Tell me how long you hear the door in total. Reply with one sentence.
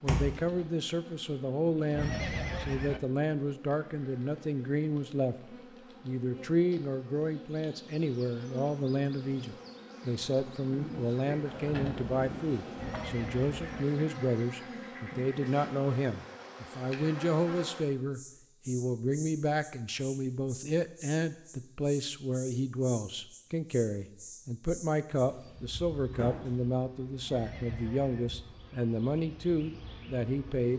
The door can be heard for 3 seconds in total.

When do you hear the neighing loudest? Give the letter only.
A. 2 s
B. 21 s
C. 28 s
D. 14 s
A.